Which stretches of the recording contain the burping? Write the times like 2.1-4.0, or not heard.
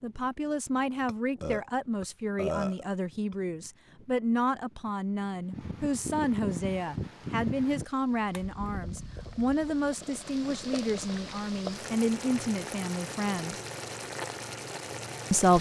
1.1-3.4.